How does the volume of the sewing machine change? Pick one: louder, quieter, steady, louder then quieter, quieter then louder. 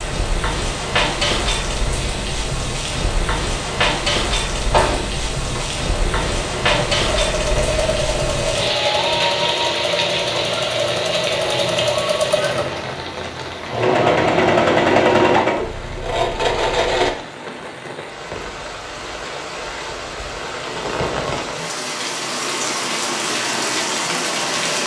louder.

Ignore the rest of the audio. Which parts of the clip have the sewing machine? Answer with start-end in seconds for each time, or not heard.
4.7-17.1.